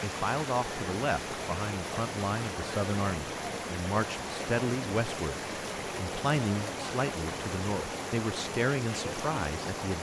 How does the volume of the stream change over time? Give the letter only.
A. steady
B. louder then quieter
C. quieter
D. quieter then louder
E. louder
A.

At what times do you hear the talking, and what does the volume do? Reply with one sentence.
The talking can be heard from 0.0 to 9.9 s, at a steady volume.